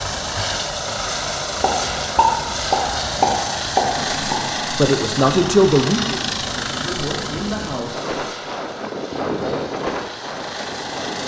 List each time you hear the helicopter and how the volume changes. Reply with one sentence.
The helicopter can be heard from 0.0 to 11.2 s, getting quieter.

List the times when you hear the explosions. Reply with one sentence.
You can hear the explosions from 1.6 to 4.4 s.